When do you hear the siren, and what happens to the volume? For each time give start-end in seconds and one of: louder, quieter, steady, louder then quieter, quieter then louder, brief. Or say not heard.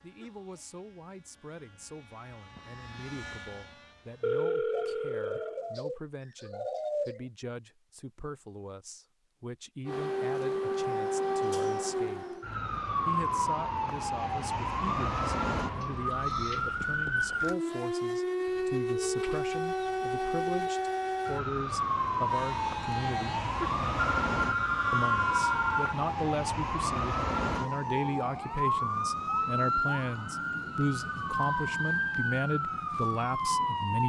9.8-34.0 steady.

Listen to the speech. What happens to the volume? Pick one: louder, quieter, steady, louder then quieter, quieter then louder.
louder.